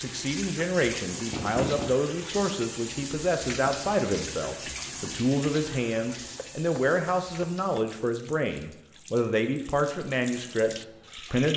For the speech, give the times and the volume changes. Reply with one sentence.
You can hear the speech from 0.0 to 11.5 s, at a steady volume.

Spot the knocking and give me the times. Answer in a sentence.
You can hear the knocking from 1.3 to 1.9 s and from 6.3 to 7.9 s.